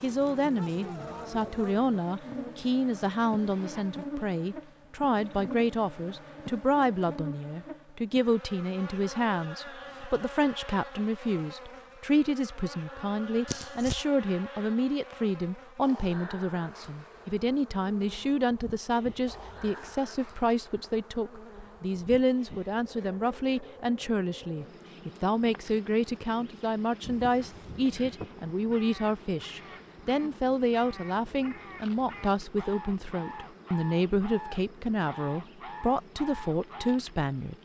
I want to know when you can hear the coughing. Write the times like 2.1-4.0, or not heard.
13.4-14.1.